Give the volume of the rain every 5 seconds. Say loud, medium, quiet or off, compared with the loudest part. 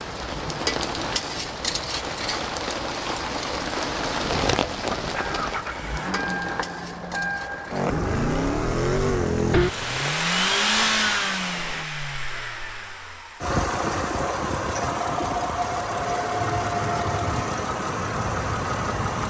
loud, medium, quiet, off.